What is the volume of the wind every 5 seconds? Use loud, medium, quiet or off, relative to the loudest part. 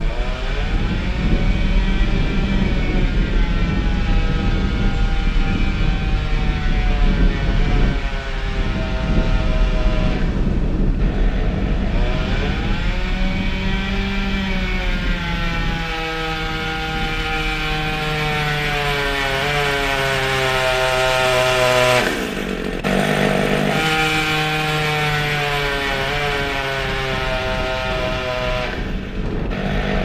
loud, loud, loud, medium, quiet, medium.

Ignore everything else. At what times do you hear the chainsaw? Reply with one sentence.
You can hear the chainsaw from 0.0 to 29.9 s.